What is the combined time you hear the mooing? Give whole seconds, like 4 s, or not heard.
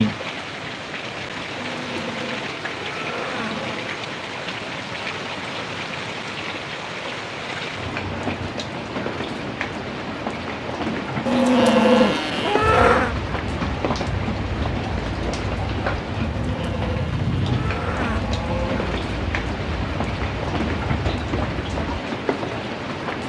7 s.